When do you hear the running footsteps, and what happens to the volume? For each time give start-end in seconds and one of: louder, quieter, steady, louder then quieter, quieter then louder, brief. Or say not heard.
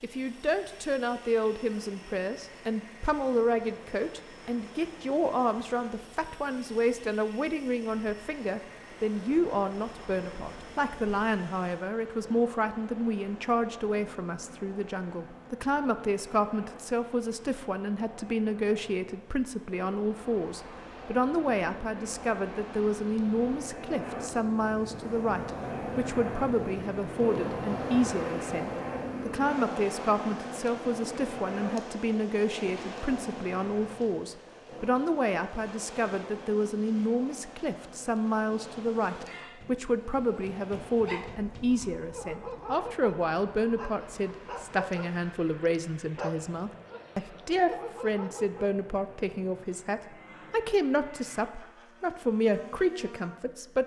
not heard.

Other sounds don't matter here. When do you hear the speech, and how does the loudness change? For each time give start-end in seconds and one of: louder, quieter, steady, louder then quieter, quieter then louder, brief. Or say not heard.
0.0-53.8 steady.